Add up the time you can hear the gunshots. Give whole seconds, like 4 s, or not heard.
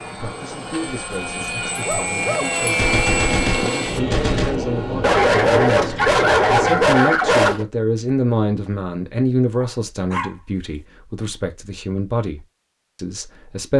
2 s.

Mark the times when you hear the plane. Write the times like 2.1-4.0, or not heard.
0.0-6.8.